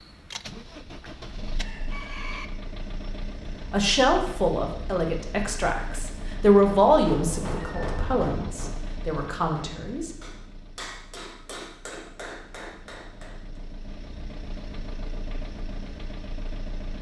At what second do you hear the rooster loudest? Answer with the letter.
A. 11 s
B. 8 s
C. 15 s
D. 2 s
D.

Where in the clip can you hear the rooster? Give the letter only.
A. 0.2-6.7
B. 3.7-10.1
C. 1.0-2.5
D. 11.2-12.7
C.